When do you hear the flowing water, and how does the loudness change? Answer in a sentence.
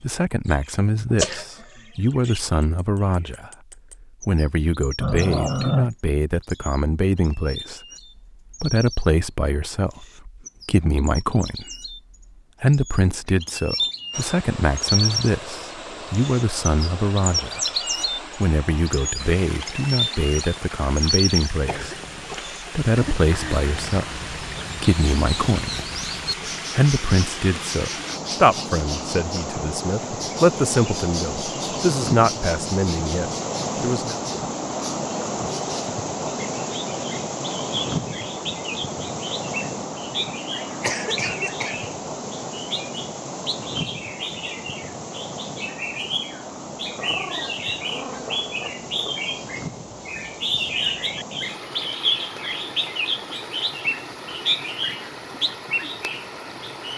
You can hear the flowing water from 14.1 to 56.9 s, getting louder then quieter.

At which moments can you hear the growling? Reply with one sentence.
The growling can be heard from 5.0 to 5.9 s and from 47.0 to 49.1 s.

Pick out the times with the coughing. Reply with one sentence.
You can hear the coughing from 1.1 to 1.8 s, from 21.6 to 22.4 s and from 40.8 to 41.9 s.